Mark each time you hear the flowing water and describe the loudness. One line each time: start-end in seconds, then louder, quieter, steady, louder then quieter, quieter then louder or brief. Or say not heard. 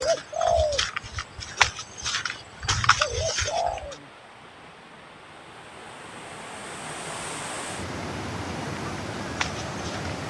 0.0-10.2 louder.